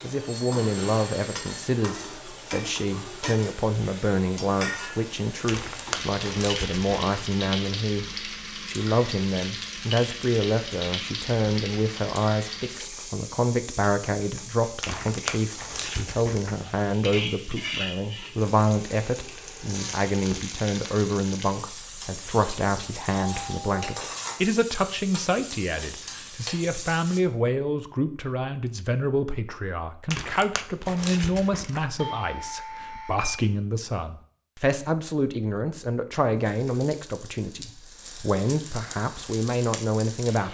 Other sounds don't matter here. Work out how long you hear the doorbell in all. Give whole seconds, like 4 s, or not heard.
4 s.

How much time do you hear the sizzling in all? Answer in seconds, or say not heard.
31 s.